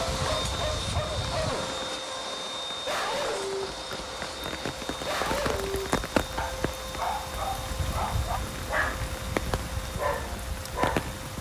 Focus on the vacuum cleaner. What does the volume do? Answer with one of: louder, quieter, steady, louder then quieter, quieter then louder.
quieter.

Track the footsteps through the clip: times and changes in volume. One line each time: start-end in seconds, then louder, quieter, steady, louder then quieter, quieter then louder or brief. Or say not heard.
not heard.